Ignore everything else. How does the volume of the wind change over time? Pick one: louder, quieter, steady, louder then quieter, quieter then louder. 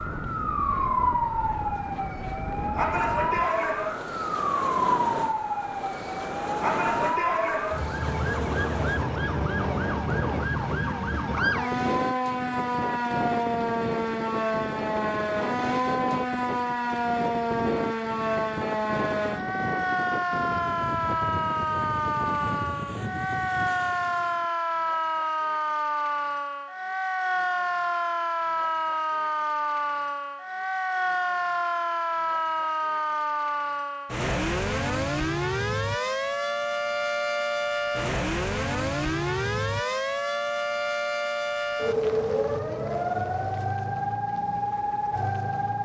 steady.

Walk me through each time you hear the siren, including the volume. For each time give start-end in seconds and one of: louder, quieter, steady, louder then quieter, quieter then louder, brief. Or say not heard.
0.0-45.8 steady.